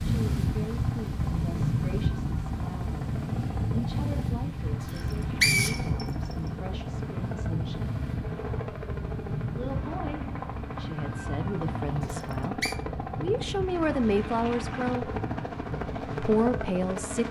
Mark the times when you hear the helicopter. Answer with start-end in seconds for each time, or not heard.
0.0-17.2.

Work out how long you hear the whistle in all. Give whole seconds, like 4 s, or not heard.
2 s.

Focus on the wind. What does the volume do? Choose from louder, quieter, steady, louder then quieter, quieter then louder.
quieter.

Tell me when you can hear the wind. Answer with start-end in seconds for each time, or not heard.
0.0-17.2.